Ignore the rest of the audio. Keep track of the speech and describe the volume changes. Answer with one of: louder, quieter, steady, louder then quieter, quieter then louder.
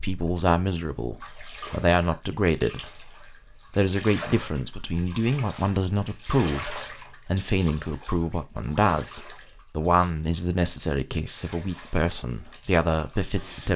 steady.